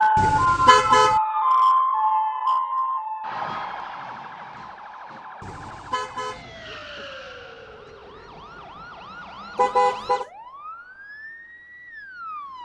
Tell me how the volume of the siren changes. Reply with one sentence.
The loudness of the siren goes down.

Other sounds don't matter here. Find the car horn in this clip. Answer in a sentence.
The car horn can be heard from 0.1 to 1.2 s, from 5.4 to 6.5 s and from 9.6 to 10.2 s.